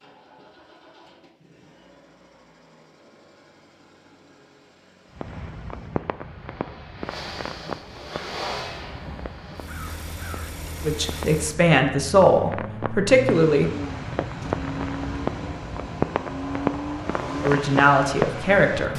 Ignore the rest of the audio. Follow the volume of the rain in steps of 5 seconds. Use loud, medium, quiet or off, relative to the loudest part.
off, medium, medium, loud.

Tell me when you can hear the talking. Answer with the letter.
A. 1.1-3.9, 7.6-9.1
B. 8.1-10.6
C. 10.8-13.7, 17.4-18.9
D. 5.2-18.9
C.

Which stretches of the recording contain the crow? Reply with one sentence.
The crow can be heard from 8.1 to 10.6 s.